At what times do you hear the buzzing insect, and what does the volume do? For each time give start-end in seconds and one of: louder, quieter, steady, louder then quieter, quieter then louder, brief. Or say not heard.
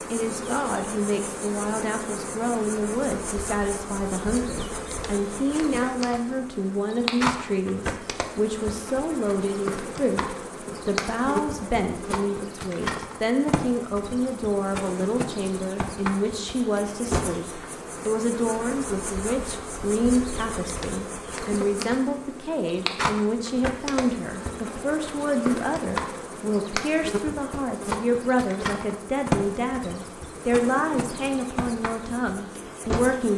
0.0-33.3 steady.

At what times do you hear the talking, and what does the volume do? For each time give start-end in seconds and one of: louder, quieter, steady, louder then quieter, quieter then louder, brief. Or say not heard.
0.1-33.3 steady.